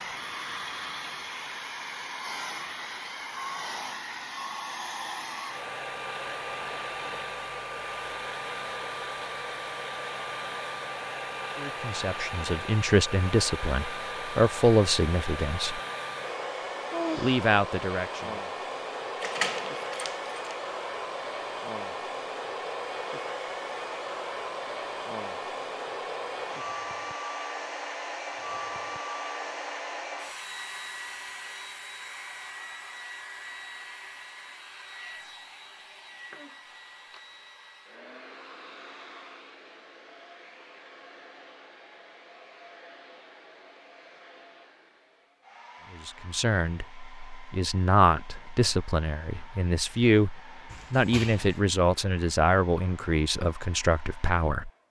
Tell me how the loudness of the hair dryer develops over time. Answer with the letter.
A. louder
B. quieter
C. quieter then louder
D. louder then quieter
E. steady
B.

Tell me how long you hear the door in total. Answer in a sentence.
You can hear the door for 2 seconds altogether.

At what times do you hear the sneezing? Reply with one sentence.
The sneezing can be heard from 16.9 to 17.4 s.